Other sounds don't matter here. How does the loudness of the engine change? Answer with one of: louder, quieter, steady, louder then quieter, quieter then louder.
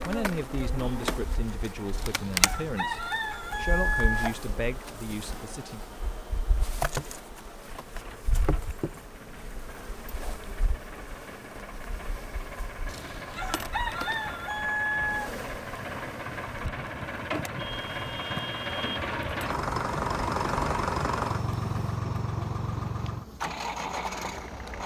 louder.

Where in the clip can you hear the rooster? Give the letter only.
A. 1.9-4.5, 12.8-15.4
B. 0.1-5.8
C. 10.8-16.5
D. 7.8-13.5
A.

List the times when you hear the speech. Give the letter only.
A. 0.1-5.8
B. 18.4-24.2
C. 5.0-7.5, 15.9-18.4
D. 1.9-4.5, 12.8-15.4
A.